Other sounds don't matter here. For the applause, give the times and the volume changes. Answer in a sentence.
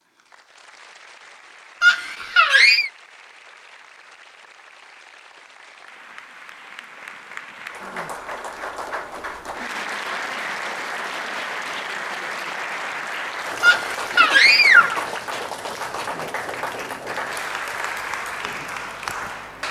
The applause can be heard from 0.0 to 19.6 s, getting louder.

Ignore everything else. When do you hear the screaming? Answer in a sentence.
You can hear the screaming from 1.8 to 2.9 s and from 13.6 to 15.1 s.